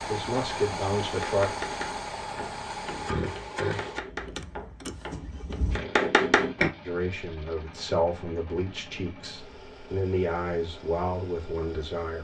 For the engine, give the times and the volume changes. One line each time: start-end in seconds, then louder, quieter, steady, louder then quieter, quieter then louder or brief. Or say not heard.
0.0-12.1 quieter.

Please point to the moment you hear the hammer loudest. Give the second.
6 s.